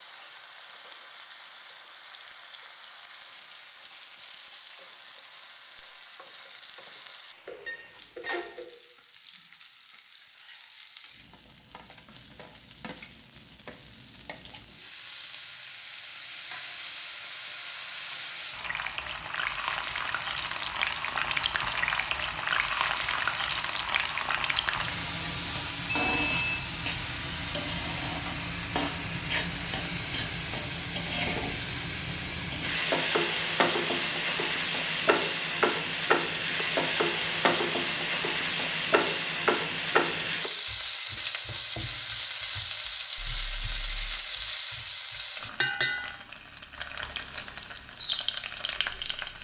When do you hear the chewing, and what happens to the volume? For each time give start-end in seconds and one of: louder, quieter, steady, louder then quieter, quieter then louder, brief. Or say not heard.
not heard.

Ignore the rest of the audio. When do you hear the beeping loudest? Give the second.
26 s.